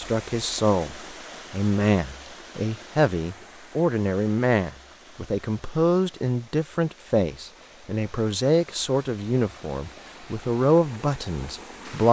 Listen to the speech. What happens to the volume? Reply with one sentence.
The loudness of the speech stays about the same.